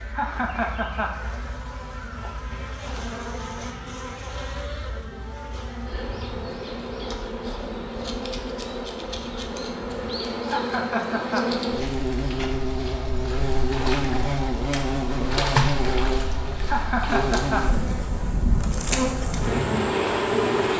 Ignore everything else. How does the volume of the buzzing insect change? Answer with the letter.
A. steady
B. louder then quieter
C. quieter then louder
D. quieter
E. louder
E.